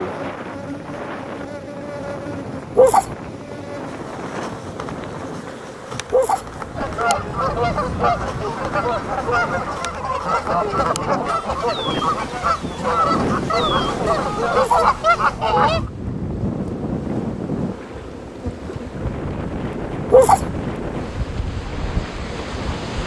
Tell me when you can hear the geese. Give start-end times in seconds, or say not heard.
6.8-15.9.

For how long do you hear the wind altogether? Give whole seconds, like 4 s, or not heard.
23 s.